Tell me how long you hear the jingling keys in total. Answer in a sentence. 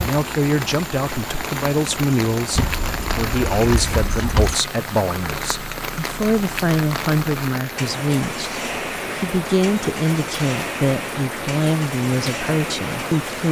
You can hear the jingling keys for 2 seconds altogether.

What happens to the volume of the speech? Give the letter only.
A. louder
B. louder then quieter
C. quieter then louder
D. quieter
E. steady
E.